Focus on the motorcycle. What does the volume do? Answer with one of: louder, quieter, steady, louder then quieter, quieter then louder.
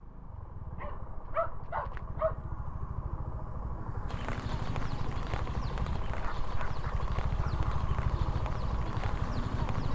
louder.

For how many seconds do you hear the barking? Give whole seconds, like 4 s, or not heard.
3 s.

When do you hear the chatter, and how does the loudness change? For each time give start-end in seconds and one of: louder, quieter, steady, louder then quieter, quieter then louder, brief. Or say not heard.
not heard.